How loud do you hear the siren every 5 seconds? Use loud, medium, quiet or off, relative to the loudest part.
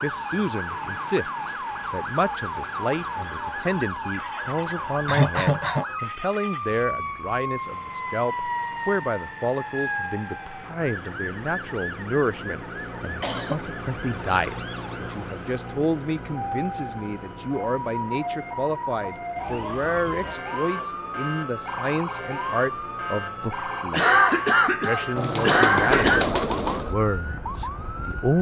loud, loud, medium, loud, loud, loud.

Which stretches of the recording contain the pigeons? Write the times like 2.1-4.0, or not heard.
25.1-26.9.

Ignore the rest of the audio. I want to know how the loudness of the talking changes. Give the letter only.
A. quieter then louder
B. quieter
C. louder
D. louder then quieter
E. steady
E.